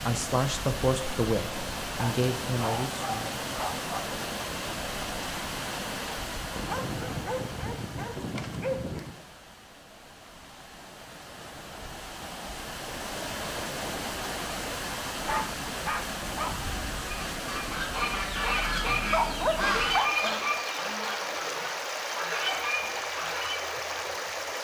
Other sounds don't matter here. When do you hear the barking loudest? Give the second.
19 s.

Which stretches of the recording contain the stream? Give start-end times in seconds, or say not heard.
0.0-24.5.